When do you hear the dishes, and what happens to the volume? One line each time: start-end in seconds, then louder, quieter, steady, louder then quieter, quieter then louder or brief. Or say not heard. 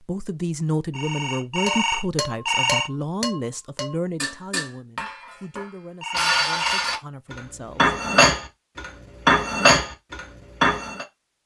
1.6-11.1 louder.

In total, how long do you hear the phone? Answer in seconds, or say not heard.
3 s.